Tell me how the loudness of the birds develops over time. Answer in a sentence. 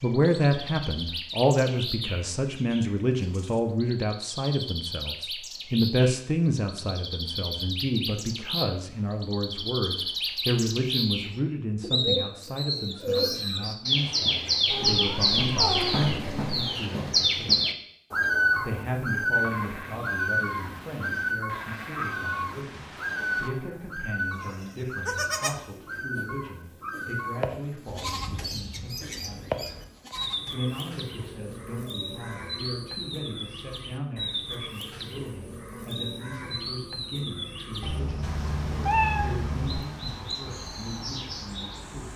The volume of the birds goes up, then down.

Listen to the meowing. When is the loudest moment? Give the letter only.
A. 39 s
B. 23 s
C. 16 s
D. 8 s
A.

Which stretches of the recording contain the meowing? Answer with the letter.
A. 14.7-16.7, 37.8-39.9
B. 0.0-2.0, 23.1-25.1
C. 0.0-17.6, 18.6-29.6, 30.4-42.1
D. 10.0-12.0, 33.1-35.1
A.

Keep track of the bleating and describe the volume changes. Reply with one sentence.
The volume of the bleating goes up.